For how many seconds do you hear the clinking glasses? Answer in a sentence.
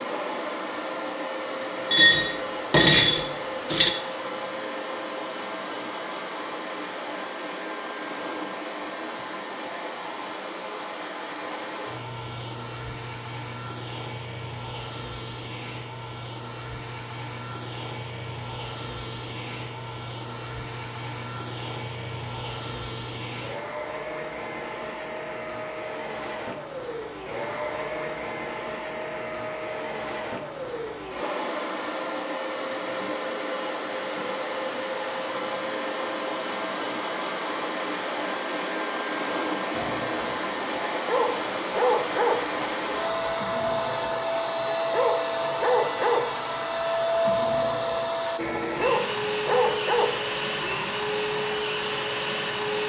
You can hear the clinking glasses for 2 seconds altogether.